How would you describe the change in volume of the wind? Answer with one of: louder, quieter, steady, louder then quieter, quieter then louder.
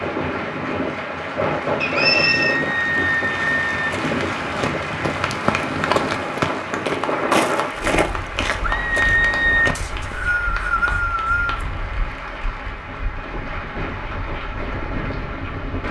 quieter then louder.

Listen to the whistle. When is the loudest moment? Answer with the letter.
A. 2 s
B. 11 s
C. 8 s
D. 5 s
A.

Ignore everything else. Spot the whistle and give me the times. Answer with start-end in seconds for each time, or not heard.
1.8-2.5, 9.8-11.7.